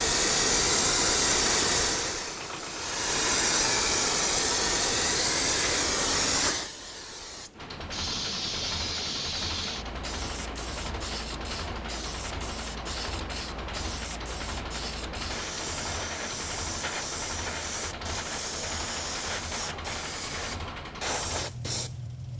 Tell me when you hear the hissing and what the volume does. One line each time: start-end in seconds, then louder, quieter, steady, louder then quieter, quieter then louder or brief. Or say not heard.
0.0-22.3 quieter.